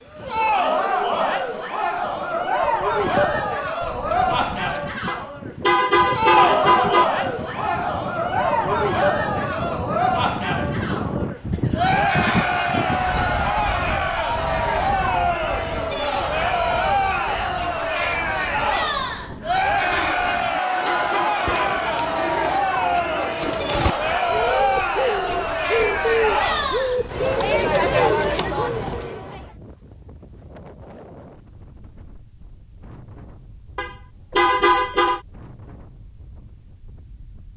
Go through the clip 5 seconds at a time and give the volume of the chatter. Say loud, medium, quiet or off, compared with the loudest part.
loud, loud, loud, loud, loud, loud, off, off.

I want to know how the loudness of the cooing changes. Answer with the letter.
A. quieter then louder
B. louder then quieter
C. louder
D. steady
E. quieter
C.